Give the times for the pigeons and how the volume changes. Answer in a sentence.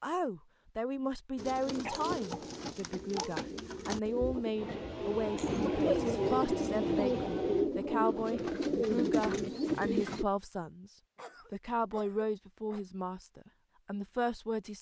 You can hear the pigeons from 1.4 to 10.2 s, getting louder.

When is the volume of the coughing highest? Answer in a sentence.
The volume of the coughing peaks at 6 seconds.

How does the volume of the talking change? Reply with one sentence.
The loudness of the talking stays about the same.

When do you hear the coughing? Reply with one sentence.
The coughing can be heard from 1.9 to 3.4 s, from 5.3 to 6.2 s and from 11.2 to 12.8 s.